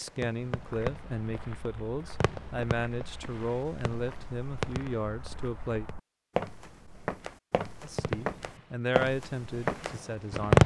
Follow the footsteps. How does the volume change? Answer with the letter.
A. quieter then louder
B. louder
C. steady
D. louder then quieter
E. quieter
B.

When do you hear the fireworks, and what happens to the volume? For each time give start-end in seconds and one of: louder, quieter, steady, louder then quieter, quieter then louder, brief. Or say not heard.
0.0-6.0 quieter then louder
7.8-10.6 brief.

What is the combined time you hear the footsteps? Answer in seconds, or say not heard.
10 s.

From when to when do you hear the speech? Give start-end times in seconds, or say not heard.
0.0-5.8, 7.8-10.6.